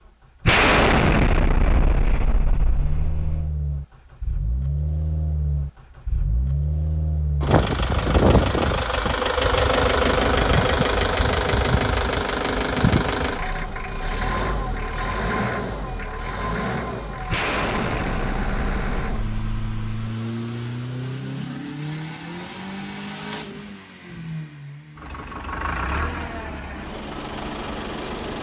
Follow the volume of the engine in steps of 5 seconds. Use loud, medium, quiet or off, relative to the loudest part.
medium, loud, loud, medium, medium, medium.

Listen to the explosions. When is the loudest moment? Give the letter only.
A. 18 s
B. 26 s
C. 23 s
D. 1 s
D.